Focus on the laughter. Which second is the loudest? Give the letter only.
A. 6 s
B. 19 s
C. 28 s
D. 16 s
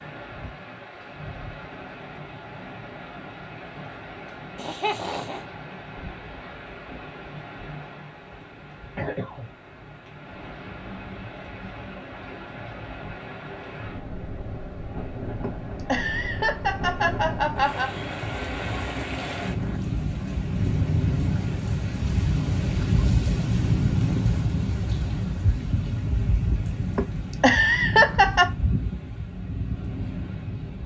C.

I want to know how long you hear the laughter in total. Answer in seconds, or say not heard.
5 s.